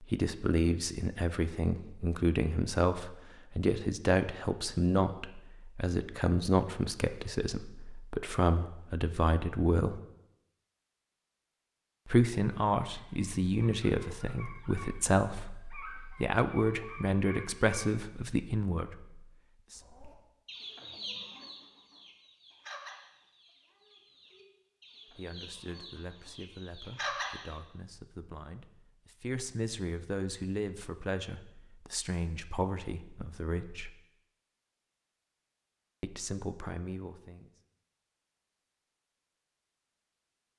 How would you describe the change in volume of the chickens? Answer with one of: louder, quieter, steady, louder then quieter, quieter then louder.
quieter then louder.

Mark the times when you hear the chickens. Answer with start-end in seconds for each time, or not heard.
19.8-27.6.